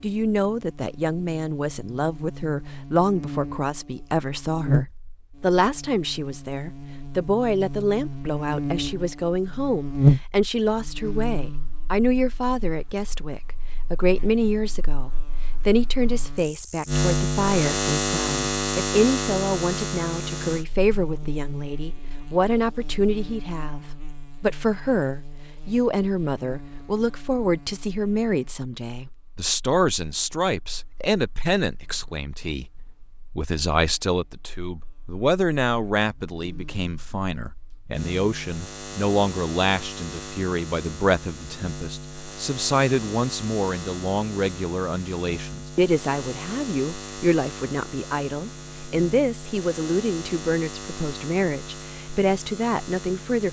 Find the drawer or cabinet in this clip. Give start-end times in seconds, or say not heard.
not heard.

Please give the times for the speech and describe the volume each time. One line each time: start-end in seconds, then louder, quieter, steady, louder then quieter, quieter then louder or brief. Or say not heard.
0.0-53.4 steady.